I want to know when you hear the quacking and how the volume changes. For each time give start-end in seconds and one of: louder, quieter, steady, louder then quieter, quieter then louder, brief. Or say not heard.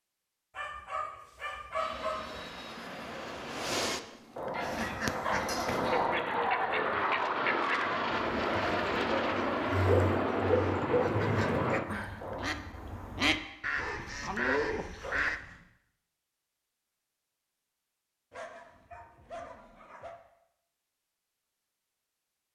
4.6-15.4 quieter then louder.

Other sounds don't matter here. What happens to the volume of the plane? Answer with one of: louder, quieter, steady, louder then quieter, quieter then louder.
louder.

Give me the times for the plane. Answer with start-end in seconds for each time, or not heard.
1.7-12.5.